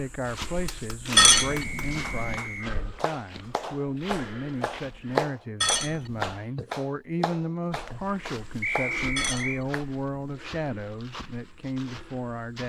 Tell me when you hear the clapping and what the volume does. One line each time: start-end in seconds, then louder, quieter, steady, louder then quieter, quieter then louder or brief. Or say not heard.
0.7-9.8 louder then quieter.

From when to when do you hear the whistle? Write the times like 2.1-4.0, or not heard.
1.5-2.8, 8.6-9.6.